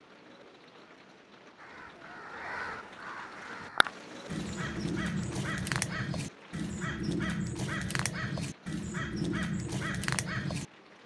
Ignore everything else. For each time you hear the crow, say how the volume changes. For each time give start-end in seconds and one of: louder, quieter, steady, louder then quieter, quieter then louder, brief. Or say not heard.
1.6-10.7 louder.